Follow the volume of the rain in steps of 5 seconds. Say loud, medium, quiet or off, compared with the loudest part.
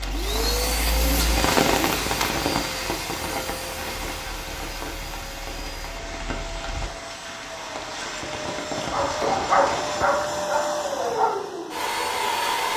loud, medium, off.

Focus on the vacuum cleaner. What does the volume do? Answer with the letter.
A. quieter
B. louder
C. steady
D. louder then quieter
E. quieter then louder
E.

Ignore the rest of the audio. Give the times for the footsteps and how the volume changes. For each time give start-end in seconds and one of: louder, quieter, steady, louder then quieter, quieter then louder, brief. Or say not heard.
not heard.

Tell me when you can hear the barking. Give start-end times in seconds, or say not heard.
8.9-11.4.